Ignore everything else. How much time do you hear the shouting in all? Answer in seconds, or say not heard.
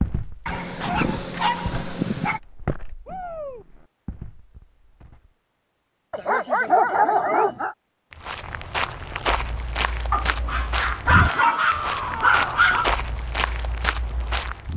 2 s.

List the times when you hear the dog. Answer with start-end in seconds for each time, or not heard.
0.5-2.4, 6.1-7.8, 10.1-12.8.